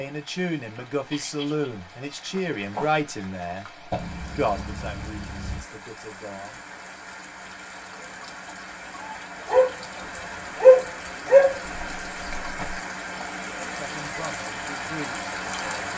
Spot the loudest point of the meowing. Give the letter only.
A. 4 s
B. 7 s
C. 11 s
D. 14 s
A.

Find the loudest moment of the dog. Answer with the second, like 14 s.
11 s.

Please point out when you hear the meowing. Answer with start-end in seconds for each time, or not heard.
3.9-5.7, 11.6-12.8.